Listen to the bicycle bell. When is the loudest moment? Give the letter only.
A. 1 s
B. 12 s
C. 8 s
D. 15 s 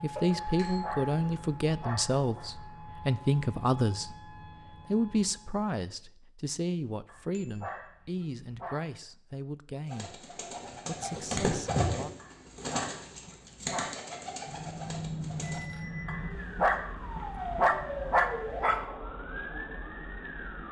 D.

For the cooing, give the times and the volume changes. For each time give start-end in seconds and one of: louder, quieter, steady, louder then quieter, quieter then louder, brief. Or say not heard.
9.8-15.7 louder then quieter.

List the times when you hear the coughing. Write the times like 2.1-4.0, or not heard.
not heard.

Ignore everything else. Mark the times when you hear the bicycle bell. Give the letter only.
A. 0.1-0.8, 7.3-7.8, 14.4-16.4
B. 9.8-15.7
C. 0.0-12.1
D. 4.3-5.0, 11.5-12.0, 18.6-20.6
A.